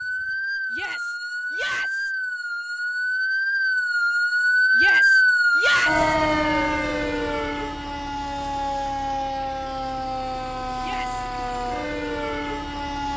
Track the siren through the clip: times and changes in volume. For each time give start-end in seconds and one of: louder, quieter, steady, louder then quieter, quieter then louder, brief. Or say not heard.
0.0-13.1 louder then quieter.